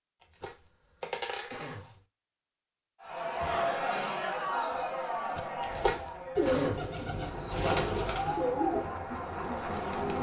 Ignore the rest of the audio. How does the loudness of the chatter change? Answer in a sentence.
The loudness of the chatter goes down, then up.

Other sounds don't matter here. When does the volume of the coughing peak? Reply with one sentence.
The volume of the coughing peaks at 7 seconds.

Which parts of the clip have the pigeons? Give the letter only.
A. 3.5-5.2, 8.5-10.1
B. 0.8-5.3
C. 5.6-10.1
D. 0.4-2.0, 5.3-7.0
C.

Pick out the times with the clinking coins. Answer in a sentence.
You can hear the clinking coins from 0.2 to 1.9 s and from 5.6 to 6.2 s.